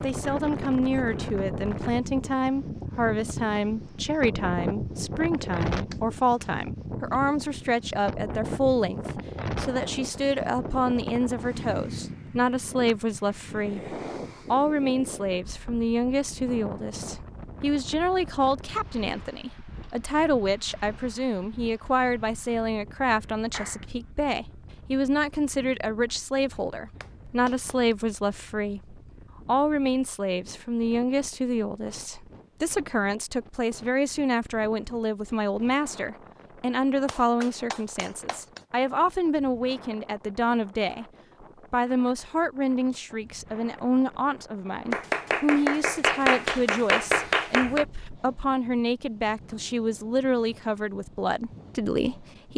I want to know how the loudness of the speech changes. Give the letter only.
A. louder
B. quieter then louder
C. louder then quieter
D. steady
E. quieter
D.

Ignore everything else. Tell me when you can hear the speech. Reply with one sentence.
You can hear the speech from 0.0 to 41.0 s and from 41.7 to 52.5 s.